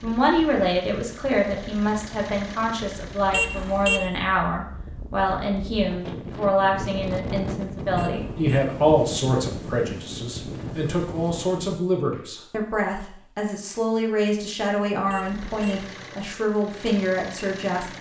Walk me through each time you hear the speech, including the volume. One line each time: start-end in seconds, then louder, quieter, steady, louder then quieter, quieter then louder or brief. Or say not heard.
0.0-17.9 steady.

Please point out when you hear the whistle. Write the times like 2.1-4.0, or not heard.
not heard.